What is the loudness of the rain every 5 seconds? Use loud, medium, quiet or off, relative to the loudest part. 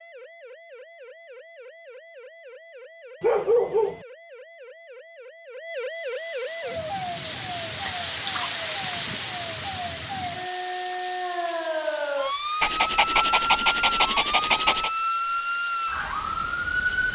off, loud, medium, medium.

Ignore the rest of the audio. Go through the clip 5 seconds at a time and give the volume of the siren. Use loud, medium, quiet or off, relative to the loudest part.
quiet, medium, loud, loud.